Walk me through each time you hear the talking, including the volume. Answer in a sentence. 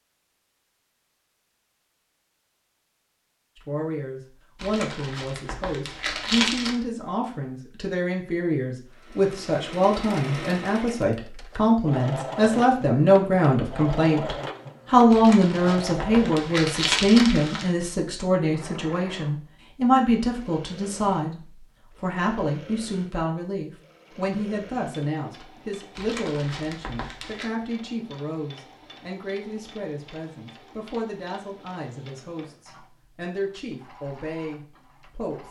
The talking can be heard from 3.5 to 35.4 s, getting louder then quieter.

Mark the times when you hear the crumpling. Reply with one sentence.
You can hear the crumpling from 4.5 to 6.8 s, from 15.1 to 17.8 s and from 25.9 to 27.5 s.